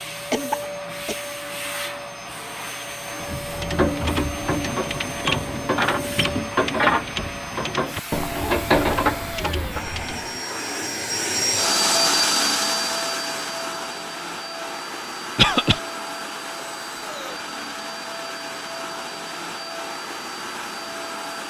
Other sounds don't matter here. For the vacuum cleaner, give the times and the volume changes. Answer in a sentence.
You can hear the vacuum cleaner from 0.0 to 21.4 s, getting louder then quieter.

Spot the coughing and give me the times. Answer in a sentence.
You can hear the coughing from 0.3 to 1.1 s and from 15.3 to 15.8 s.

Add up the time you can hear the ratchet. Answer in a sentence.
The ratchet can be heard for 7 seconds in total.